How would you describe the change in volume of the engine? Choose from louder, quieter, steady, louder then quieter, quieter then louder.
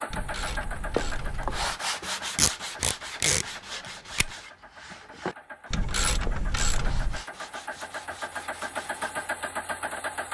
quieter then louder.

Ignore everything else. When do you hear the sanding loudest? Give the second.
2 s.